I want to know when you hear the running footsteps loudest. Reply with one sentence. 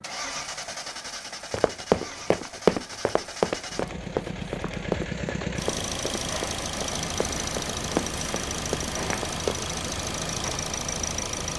The loudest moment of the running footsteps is at 3 seconds.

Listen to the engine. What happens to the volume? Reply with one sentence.
The loudness of the engine goes up.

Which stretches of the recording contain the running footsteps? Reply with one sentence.
The running footsteps can be heard from 1.5 to 9.7 s.